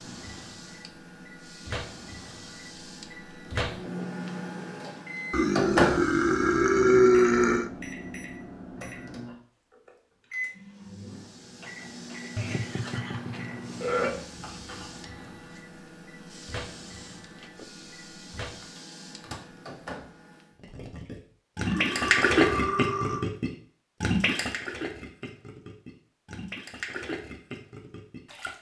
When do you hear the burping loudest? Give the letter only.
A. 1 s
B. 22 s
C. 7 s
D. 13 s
C.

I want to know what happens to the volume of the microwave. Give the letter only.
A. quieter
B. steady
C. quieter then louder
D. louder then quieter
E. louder
D.